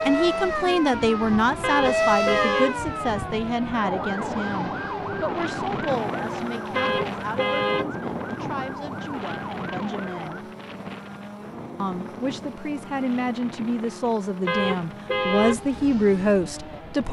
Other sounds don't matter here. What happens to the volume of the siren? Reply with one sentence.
The loudness of the siren goes down.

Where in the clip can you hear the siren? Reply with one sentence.
The siren can be heard from 0.0 to 10.4 s.